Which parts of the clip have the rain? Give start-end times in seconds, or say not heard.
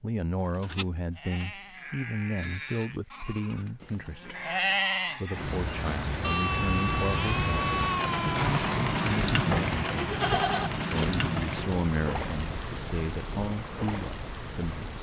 5.3-14.9.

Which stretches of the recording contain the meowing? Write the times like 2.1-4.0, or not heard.
not heard.